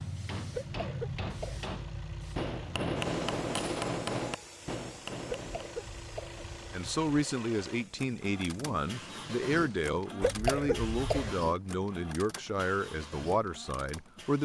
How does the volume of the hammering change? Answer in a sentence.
The volume of the hammering goes up, then down.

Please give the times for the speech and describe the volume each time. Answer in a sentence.
You can hear the speech from 6.7 to 14.4 s, at a steady volume.